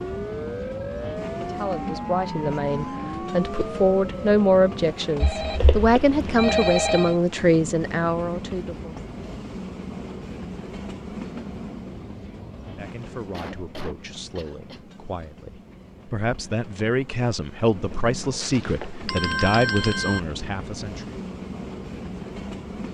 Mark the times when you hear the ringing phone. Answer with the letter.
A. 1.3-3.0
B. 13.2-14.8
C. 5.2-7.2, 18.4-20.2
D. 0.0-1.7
C.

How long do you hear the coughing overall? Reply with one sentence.
You can hear the coughing for 2 seconds altogether.